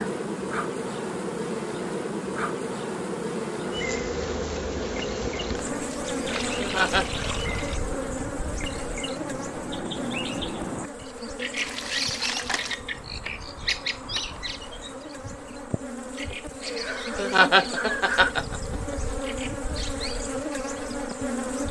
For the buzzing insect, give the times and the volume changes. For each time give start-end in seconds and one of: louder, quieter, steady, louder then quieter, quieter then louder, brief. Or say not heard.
0.0-21.6 quieter then louder.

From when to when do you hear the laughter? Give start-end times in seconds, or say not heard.
6.0-7.2, 16.6-19.0.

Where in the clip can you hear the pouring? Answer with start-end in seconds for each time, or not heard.
6.2-7.8, 11.6-12.8.